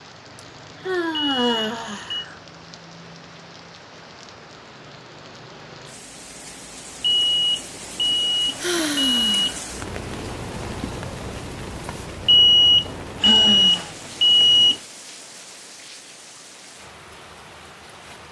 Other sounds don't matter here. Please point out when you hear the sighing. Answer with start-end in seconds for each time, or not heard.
0.3-2.4, 8.6-9.6, 13.2-13.9.